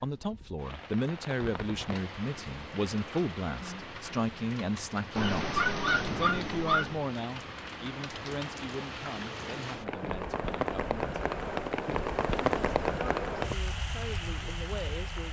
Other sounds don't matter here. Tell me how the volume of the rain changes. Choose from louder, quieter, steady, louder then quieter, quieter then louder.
louder.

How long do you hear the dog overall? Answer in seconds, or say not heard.
2 s.